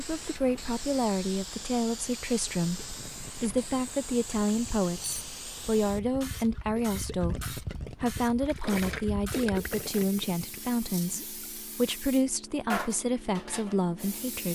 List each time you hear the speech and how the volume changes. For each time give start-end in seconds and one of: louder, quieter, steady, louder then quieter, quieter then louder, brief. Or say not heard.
0.0-14.5 steady.